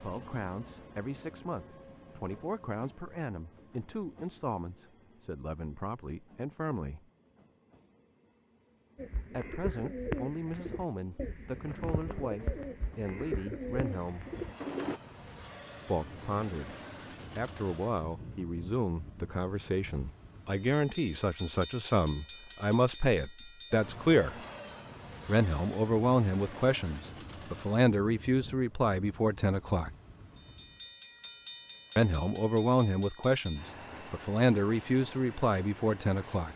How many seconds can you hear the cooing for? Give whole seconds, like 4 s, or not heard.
6 s.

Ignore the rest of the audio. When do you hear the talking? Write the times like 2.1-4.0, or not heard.
0.0-7.0, 9.3-14.2, 15.8-16.8, 17.4-24.4, 25.2-29.9, 31.9-36.5.